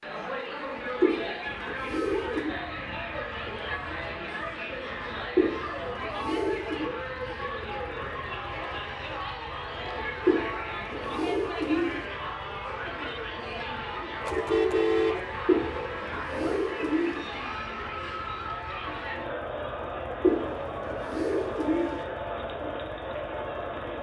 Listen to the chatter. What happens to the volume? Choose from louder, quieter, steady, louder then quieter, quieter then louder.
steady.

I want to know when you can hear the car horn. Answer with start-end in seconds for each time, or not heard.
14.2-15.8.